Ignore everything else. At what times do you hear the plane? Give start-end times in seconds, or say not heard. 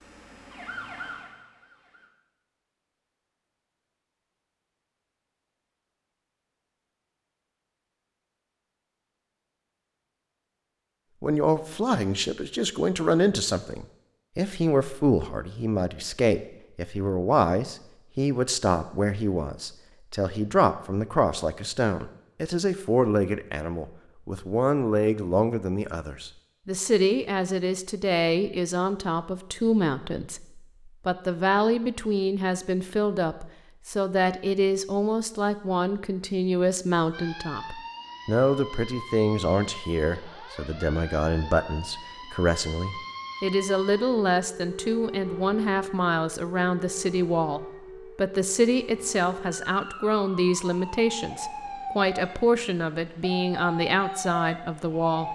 not heard.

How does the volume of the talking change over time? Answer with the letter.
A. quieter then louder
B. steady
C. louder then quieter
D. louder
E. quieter
B.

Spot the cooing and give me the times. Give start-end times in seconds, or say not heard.
not heard.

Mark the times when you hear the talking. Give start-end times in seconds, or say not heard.
11.2-55.3.